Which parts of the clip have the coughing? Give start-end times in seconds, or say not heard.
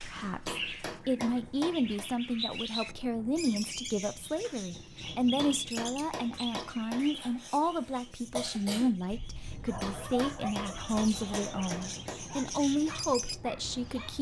7.1-8.9.